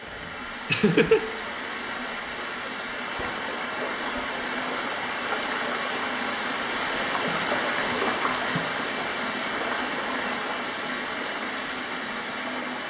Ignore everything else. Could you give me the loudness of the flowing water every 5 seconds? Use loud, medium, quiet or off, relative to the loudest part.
medium, loud, loud.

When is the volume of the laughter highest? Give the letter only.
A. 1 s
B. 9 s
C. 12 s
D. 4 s
A.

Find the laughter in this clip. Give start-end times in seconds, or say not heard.
0.7-1.2, 7.8-8.6.